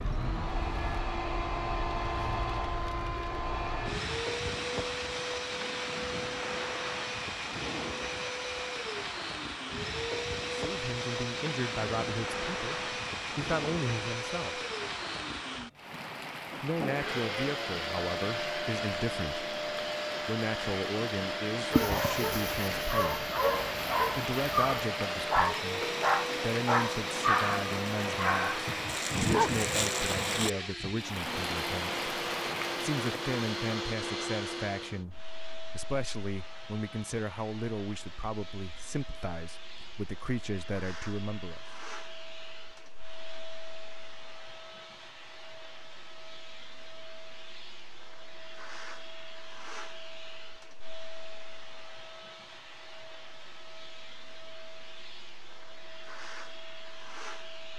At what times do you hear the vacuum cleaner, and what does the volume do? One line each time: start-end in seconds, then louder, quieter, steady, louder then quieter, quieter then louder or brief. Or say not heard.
0.0-57.7 quieter.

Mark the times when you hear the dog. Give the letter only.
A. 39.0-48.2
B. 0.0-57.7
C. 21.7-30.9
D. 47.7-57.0
C.